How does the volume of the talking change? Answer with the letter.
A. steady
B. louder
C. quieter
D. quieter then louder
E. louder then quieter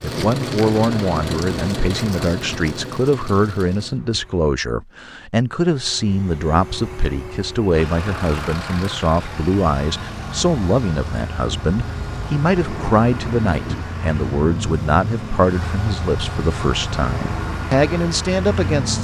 A.